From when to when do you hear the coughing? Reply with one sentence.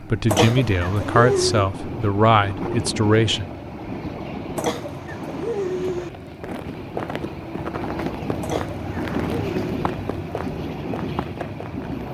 You can hear the coughing from 0.2 to 1.7 s, from 4.5 to 6.1 s and from 8.4 to 9.7 s.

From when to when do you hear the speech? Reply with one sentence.
You can hear the speech from 0.0 to 3.5 s.